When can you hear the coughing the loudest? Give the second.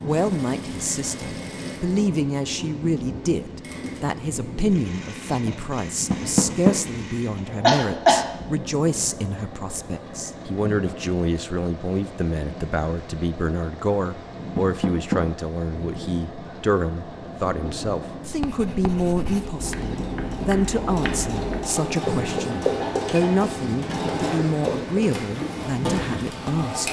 8 s.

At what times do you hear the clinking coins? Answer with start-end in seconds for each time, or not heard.
not heard.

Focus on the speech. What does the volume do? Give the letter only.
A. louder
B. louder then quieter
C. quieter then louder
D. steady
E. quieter
D.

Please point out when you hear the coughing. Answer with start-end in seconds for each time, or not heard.
7.6-8.2, 22.8-23.4.